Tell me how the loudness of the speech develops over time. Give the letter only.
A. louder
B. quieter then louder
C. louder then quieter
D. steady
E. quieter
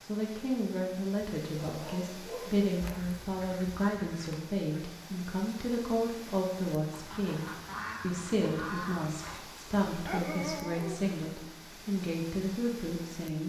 D.